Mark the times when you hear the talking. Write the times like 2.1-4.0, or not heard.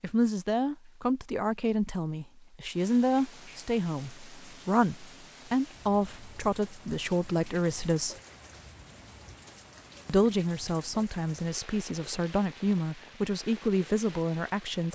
0.0-8.2, 10.1-14.9.